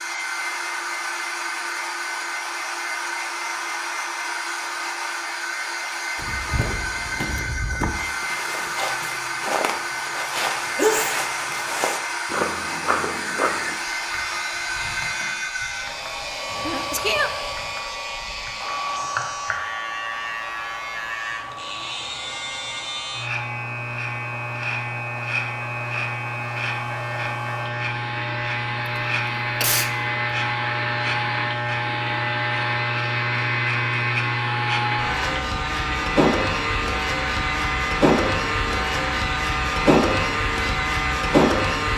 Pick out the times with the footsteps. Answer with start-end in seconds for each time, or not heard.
6.2-13.8.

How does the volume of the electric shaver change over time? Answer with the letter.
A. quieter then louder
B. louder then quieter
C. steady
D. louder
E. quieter
D.